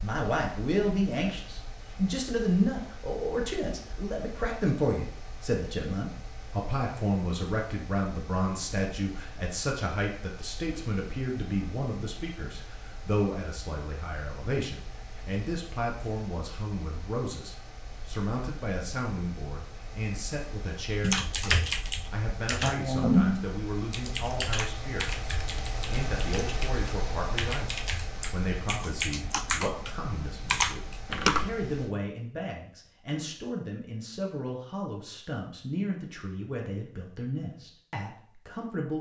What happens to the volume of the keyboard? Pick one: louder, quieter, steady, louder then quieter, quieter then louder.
quieter then louder.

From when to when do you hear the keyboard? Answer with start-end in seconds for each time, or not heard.
21.0-31.6.